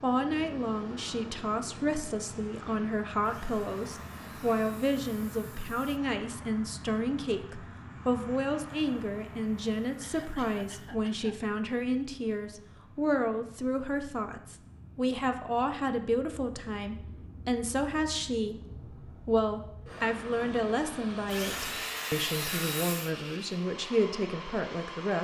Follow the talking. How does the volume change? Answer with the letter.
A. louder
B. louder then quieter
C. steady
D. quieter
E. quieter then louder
C.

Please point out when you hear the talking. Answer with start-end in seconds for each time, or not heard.
0.0-25.1.